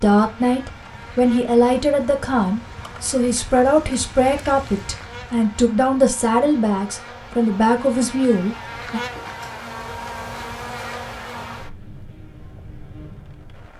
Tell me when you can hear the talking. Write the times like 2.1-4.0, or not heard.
0.0-9.0.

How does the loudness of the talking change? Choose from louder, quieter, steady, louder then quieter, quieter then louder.
steady.